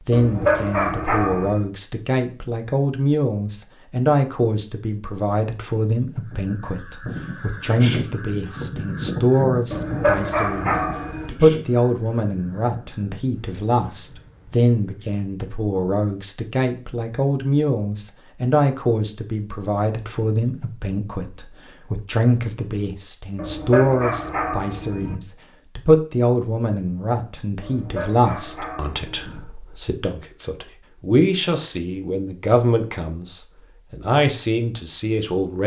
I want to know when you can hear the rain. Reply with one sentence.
You can't hear the rain here.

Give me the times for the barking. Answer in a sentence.
You can hear the barking from 0.1 to 1.6 s, from 9.7 to 11.3 s, from 23.4 to 25.1 s and from 27.6 to 29.4 s.